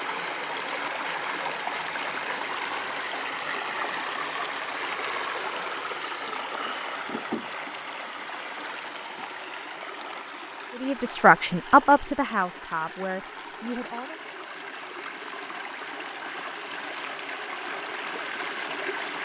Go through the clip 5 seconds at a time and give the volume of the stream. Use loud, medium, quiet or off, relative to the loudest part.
loud, loud, medium, loud.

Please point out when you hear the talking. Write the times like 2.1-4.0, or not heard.
10.8-14.2.